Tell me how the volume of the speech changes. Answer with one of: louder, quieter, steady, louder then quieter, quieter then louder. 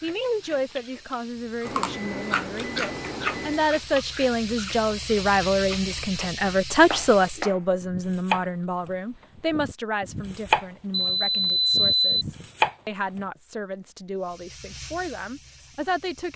louder then quieter.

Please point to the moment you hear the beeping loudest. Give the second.
12 s.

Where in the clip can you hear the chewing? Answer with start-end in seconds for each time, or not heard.
0.0-6.4.